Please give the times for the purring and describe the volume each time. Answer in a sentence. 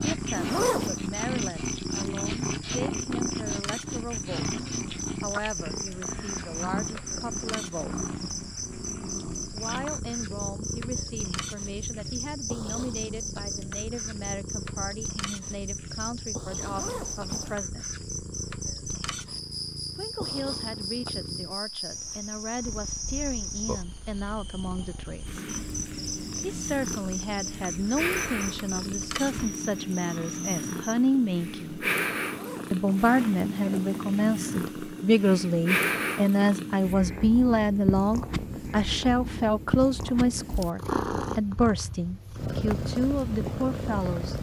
The purring can be heard from 0.0 to 44.3 s, getting quieter then louder.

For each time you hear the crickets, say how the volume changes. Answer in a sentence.
You can hear the crickets from 0.0 to 30.9 s, at a steady volume.